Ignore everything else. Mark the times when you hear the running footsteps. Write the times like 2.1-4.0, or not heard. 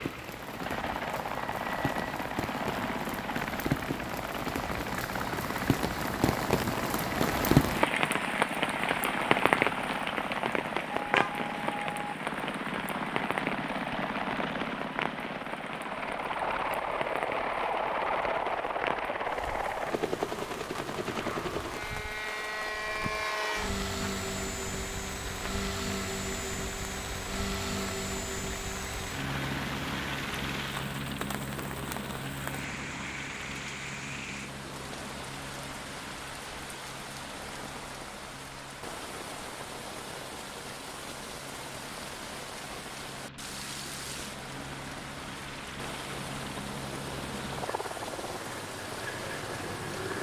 not heard.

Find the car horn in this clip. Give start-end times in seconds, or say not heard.
11.0-12.2.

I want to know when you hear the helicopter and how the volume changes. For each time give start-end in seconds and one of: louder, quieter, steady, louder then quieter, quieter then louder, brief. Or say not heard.
0.0-50.1 quieter.